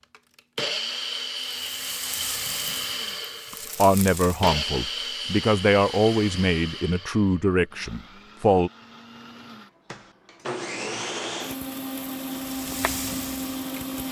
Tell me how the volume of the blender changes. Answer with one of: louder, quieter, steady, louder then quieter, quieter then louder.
quieter then louder.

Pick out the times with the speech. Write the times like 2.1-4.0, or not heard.
3.5-8.7.